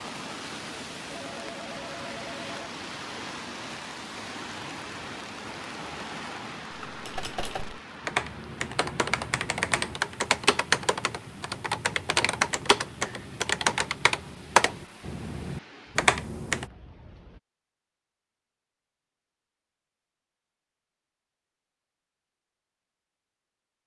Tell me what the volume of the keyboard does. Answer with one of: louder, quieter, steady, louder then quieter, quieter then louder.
louder.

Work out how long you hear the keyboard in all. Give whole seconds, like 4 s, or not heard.
10 s.